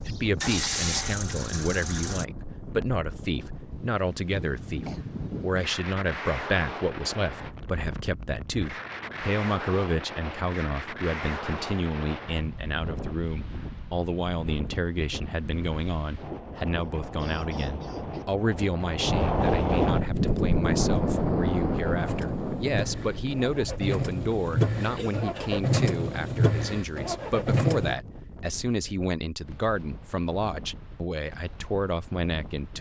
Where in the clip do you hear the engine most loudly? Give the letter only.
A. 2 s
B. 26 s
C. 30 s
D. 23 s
B.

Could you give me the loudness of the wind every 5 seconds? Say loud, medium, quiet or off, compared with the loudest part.
quiet, medium, medium, loud, loud, quiet, quiet.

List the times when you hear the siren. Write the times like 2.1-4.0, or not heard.
not heard.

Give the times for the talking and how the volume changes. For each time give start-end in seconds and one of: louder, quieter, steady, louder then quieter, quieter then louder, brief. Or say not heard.
0.0-32.7 steady.